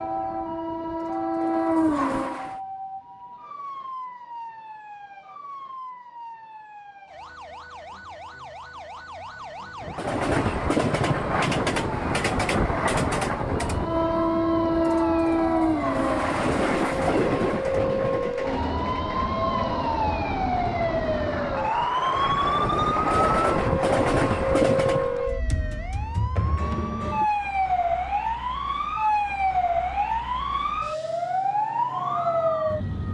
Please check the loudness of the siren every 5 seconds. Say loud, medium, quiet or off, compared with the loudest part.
medium, quiet, medium, loud, loud, loud, loud.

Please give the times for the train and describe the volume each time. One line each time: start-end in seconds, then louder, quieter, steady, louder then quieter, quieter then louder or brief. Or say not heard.
0.0-2.6 brief
9.8-25.2 quieter then louder.